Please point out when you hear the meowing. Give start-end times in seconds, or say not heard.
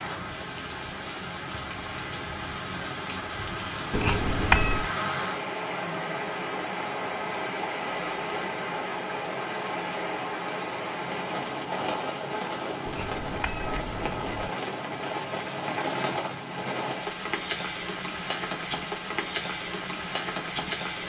3.9-4.9, 12.8-14.5.